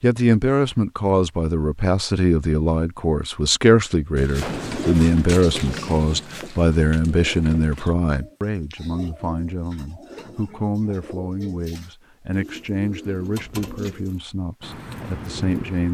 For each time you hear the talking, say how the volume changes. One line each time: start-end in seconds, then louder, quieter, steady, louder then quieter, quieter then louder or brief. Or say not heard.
0.0-15.8 quieter.